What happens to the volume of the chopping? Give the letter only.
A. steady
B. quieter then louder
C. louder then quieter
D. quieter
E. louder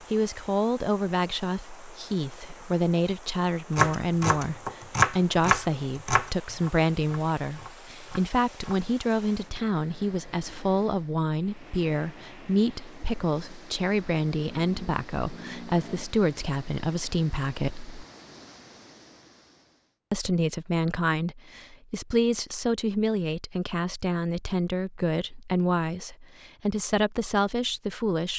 C.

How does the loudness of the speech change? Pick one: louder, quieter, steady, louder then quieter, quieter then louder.
steady.